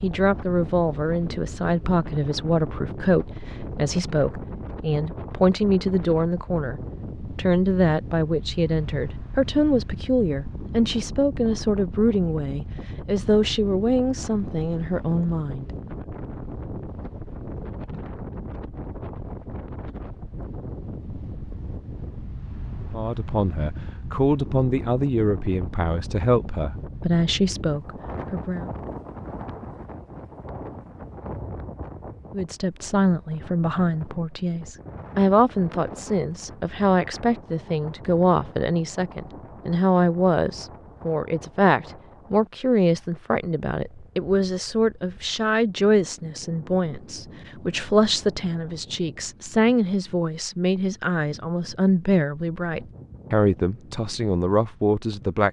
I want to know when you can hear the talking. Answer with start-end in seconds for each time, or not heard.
0.0-15.7, 22.9-28.7, 32.3-55.4.